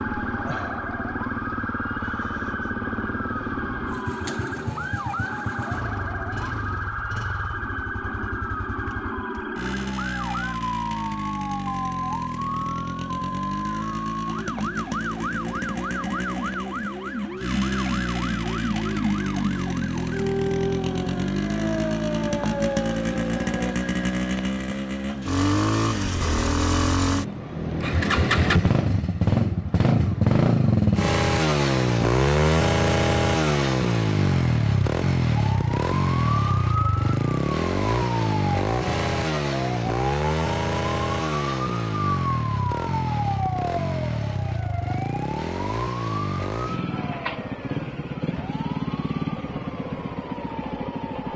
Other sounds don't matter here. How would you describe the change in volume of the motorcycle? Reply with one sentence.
The loudness of the motorcycle goes up, then down.